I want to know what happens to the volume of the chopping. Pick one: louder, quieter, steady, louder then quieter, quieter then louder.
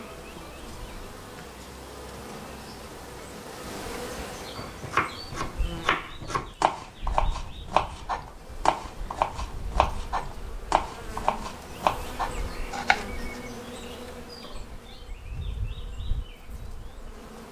steady.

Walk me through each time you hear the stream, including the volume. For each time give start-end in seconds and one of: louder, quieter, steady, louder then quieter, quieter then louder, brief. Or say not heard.
not heard.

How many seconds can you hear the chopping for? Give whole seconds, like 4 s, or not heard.
9 s.